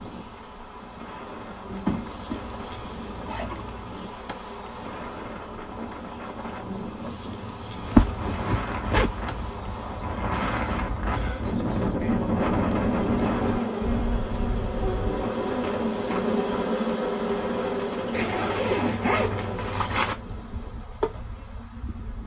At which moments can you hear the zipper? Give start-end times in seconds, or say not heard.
1.6-3.9, 7.8-9.5, 18.1-20.1.